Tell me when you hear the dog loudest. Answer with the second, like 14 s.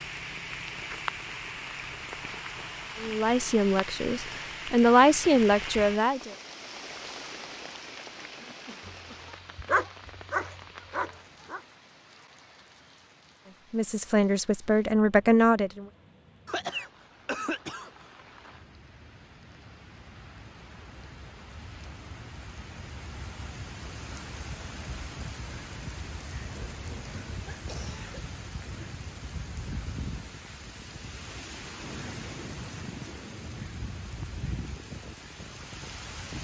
10 s.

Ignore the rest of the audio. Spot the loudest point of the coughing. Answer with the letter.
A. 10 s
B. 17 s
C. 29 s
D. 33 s
B.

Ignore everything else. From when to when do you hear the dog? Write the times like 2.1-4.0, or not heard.
8.8-11.6.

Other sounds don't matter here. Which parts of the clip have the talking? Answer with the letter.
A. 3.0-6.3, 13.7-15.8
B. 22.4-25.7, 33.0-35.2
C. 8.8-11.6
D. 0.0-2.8
A.